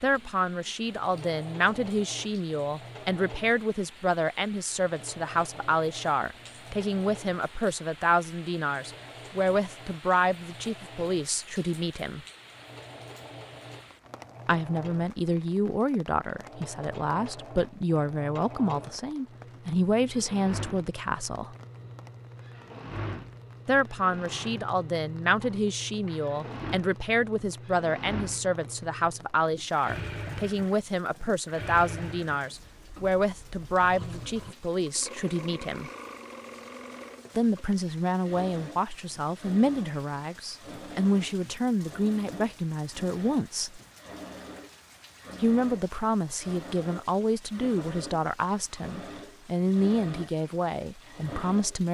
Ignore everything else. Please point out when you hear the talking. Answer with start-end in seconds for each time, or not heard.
0.0-12.2, 14.4-21.6, 23.6-35.9, 37.4-43.8, 45.4-51.8.